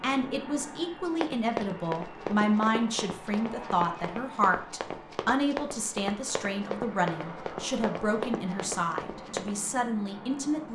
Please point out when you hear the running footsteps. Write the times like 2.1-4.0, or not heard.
1.1-9.6.